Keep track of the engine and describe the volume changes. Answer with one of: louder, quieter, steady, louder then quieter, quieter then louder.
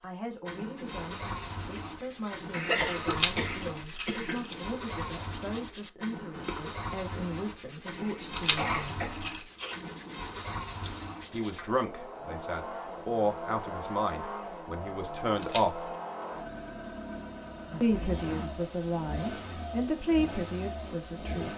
steady.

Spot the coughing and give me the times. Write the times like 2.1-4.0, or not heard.
2.5-4.4, 8.0-9.8, 17.7-18.6.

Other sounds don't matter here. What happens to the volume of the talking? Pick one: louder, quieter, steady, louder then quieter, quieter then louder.
louder.